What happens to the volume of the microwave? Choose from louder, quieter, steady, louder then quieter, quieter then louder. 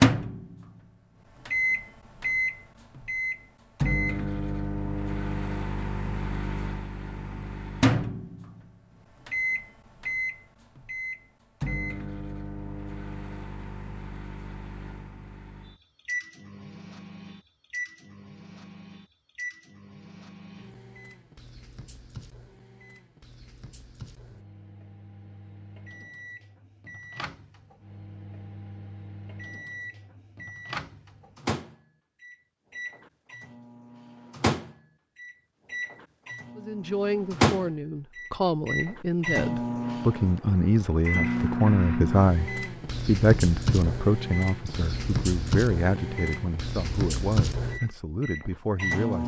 quieter then louder.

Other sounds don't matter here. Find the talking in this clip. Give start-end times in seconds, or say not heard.
36.5-49.2.